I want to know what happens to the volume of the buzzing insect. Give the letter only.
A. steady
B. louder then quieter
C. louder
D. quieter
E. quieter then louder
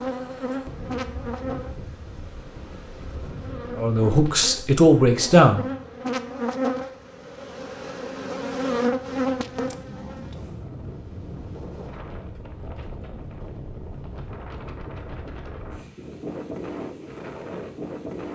E.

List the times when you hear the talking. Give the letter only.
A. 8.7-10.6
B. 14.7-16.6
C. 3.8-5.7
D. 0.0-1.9
C.